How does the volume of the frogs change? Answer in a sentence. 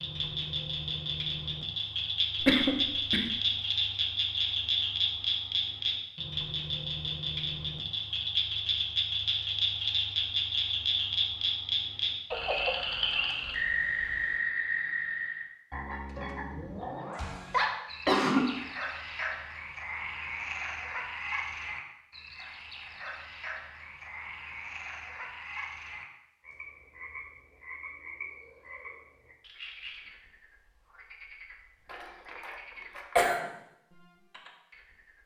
The volume of the frogs goes down.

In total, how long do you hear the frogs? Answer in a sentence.
The frogs can be heard for 35 seconds in total.